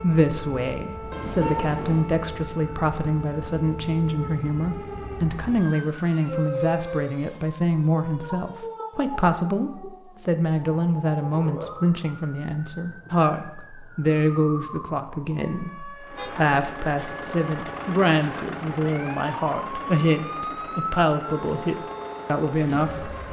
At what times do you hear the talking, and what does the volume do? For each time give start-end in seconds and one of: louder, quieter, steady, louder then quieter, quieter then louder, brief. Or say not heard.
0.0-23.1 steady.